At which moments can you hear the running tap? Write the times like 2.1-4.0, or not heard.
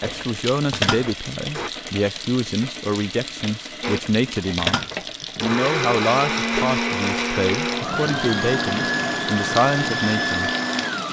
0.0-11.0.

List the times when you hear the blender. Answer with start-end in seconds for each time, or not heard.
0.0-1.7, 3.8-11.0.